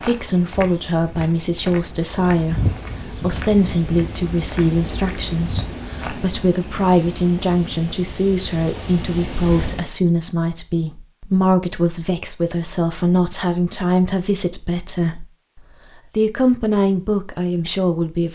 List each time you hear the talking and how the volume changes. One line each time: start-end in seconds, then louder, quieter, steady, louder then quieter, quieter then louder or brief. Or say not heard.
0.1-15.2 steady
16.1-18.3 brief.